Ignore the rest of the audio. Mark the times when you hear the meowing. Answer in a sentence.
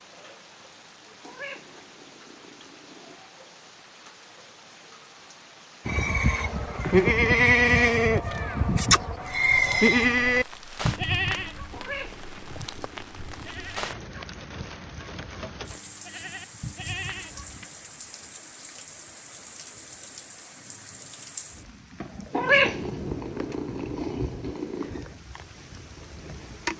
The meowing can be heard from 1.2 to 3.2 s, from 11.7 to 13.8 s and from 22.3 to 25.1 s.